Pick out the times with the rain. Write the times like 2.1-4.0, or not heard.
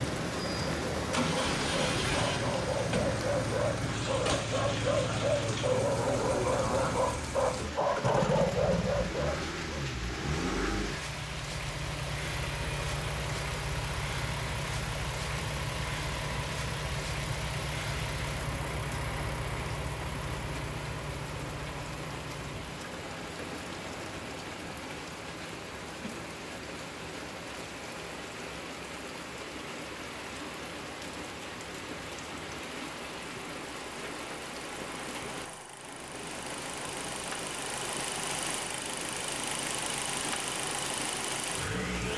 0.0-42.1.